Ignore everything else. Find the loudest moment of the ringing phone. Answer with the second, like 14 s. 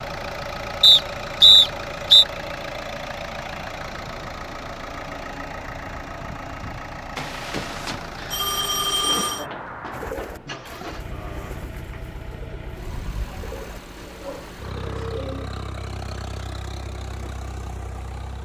9 s.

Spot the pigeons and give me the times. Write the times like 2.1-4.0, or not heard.
9.9-15.5.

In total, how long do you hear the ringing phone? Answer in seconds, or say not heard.
2 s.